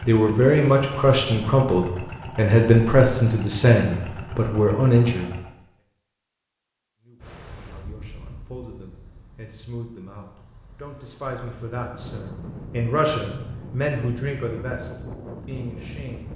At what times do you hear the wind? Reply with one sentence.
The wind can be heard from 7.2 to 16.3 s.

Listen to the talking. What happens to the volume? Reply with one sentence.
The volume of the talking goes down, then up.